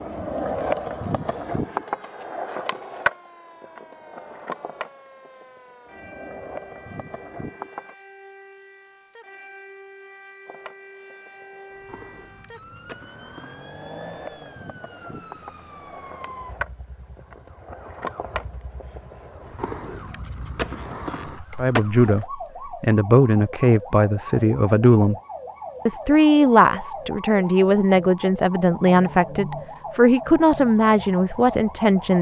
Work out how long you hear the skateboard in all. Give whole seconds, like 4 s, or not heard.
20 s.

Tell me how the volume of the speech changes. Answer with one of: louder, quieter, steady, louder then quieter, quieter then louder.
steady.